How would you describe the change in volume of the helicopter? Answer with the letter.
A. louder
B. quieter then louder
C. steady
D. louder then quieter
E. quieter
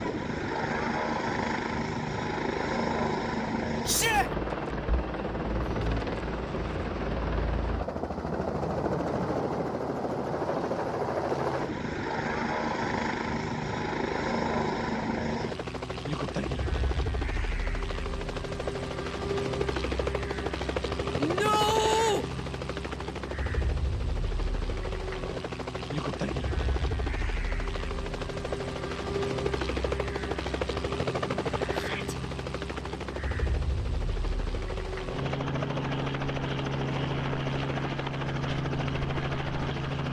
C.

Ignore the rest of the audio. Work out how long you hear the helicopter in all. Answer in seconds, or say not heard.
40 s.